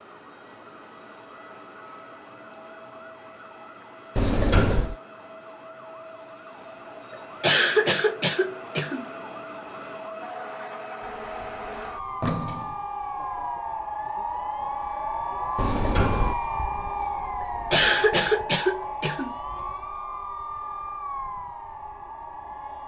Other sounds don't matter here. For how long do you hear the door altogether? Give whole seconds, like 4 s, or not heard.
3 s.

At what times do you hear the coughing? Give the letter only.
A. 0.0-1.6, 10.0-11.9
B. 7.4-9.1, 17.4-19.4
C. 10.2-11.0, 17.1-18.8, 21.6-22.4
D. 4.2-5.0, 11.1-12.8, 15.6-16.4
B.